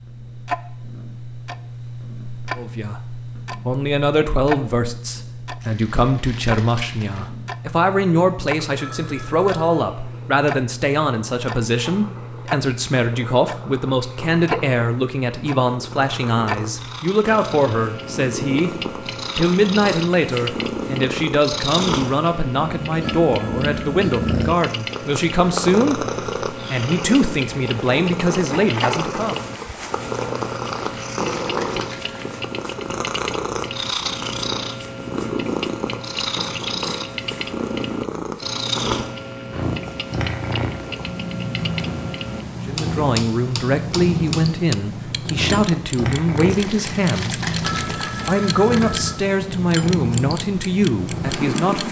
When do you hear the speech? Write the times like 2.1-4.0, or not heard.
2.5-18.8, 19.4-29.4, 42.6-47.4, 48.2-51.8.